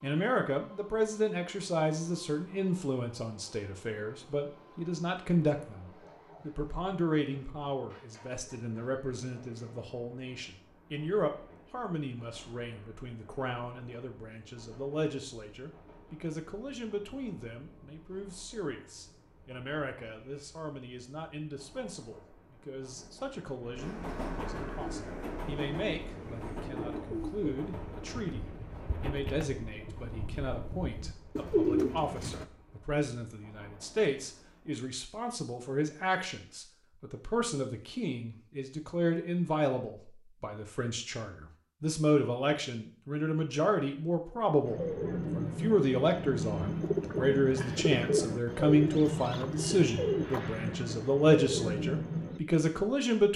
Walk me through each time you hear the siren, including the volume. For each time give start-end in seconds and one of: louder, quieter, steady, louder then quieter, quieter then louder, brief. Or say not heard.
not heard.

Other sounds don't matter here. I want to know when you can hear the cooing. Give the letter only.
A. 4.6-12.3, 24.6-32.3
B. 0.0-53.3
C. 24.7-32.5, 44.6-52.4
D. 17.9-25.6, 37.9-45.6
C.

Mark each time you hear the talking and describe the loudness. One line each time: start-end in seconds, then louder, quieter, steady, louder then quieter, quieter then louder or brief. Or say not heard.
0.0-53.3 quieter then louder.